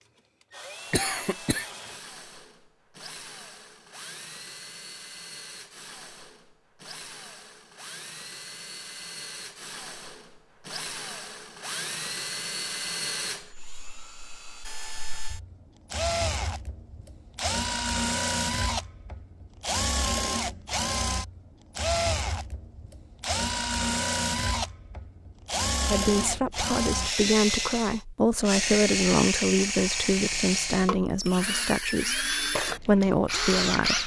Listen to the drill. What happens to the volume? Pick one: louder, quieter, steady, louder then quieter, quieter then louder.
louder.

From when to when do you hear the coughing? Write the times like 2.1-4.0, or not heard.
0.9-1.7.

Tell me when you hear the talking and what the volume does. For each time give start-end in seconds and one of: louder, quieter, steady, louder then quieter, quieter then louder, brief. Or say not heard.
25.9-34.0 steady.